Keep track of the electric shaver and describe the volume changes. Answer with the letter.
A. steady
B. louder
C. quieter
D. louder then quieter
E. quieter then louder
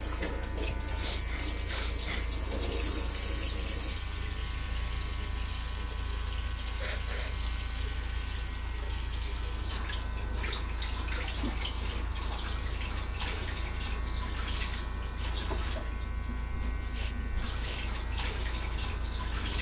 A.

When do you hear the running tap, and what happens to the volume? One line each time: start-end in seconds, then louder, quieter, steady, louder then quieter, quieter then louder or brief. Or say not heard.
0.0-19.5 steady.